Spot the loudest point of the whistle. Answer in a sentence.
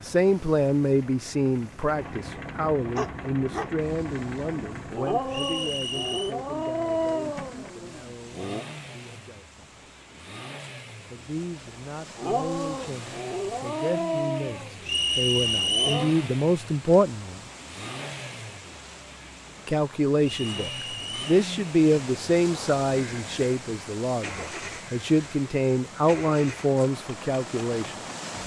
The volume of the whistle peaks at 16 seconds.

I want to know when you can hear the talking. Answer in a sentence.
The talking can be heard from 0.0 to 9.7 s, from 11.1 to 17.4 s and from 19.6 to 28.0 s.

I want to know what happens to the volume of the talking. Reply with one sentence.
The loudness of the talking goes down, then up.